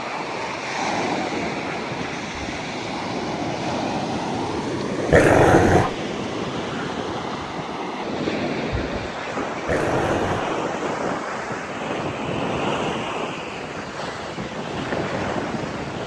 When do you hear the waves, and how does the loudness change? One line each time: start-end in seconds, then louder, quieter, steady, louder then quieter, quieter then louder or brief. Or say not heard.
0.0-16.0 steady.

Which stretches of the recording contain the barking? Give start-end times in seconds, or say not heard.
5.1-6.0, 9.7-10.5.